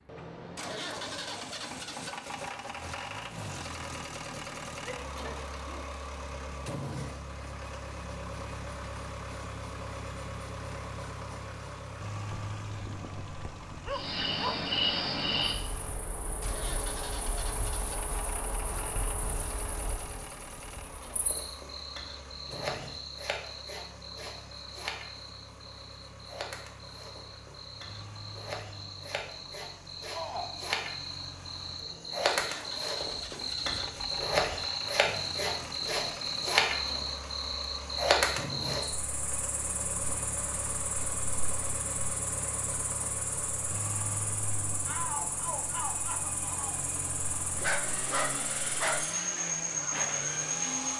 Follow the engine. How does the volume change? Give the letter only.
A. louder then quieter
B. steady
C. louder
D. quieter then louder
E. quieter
D.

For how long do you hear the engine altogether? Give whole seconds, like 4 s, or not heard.
51 s.